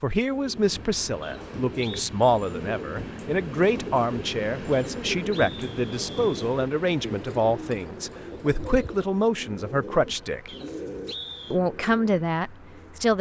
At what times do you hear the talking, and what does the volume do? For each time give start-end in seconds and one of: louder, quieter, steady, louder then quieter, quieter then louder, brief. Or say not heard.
0.0-10.5 steady
11.5-13.1 brief.